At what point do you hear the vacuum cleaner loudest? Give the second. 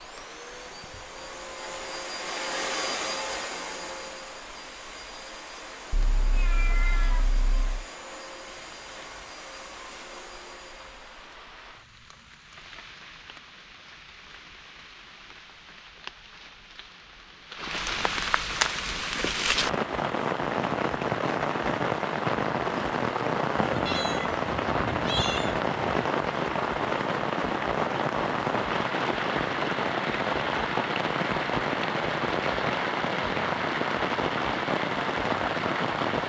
3 s.